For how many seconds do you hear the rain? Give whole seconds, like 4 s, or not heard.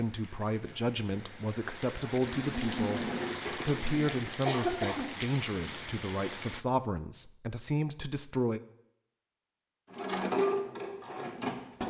7 s.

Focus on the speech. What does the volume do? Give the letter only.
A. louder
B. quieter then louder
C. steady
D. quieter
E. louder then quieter
C.